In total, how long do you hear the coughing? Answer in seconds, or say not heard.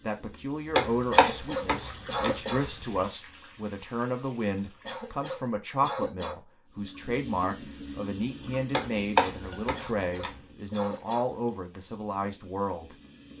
5 s.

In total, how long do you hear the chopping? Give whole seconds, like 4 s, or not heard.
4 s.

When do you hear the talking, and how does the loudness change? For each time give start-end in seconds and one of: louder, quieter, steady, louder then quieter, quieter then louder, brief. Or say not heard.
0.0-12.9 steady.